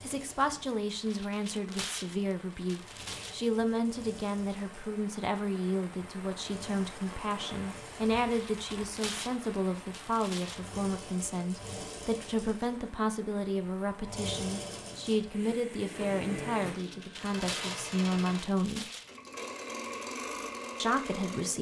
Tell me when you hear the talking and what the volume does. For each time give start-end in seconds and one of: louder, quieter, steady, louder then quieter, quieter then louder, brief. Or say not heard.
0.0-18.9 steady
20.8-21.5 brief.